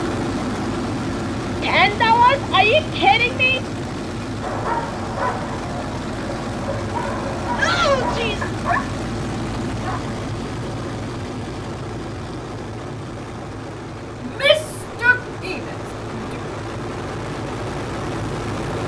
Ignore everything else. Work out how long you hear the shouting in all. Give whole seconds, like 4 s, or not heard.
4 s.